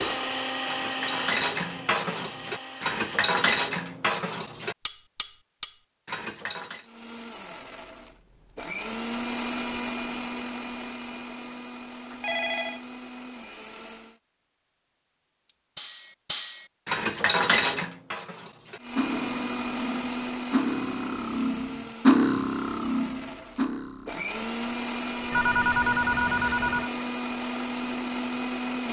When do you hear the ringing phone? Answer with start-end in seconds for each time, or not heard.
12.1-12.8, 25.3-26.9.